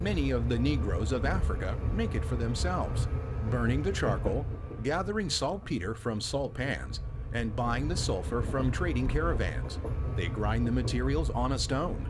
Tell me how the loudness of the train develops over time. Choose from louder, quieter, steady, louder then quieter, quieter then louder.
quieter then louder.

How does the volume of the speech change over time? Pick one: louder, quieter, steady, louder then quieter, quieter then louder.
steady.